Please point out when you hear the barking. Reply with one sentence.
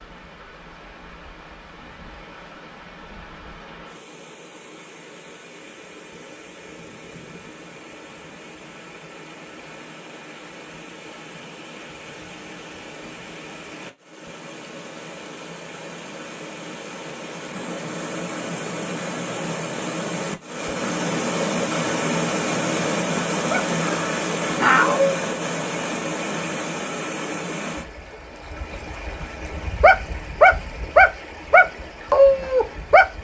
The barking can be heard from 23.5 to 25.2 s and from 29.8 to 33.1 s.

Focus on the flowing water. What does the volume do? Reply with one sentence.
The loudness of the flowing water goes up, then down.